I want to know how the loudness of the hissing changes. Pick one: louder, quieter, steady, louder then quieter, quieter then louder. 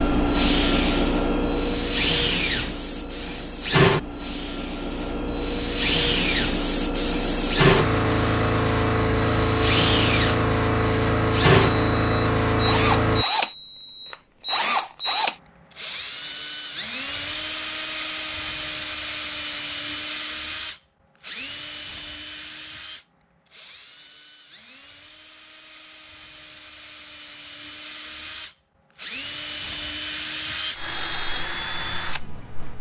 quieter then louder.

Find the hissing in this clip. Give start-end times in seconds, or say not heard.
0.0-13.2.